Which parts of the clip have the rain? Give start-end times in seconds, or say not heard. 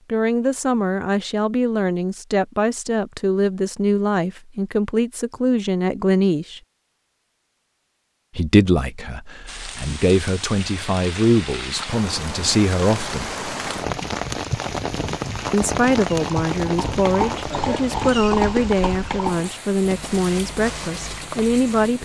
9.4-22.0.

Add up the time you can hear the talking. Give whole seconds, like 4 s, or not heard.
18 s.